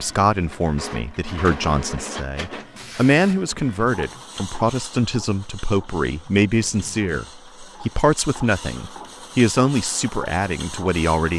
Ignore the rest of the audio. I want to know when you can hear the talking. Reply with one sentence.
You can hear the talking from 0.0 to 11.3 s.